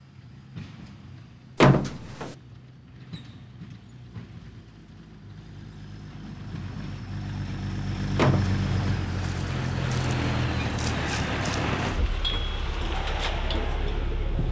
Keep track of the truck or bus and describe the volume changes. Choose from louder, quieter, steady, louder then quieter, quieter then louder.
louder.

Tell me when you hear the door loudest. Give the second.
2 s.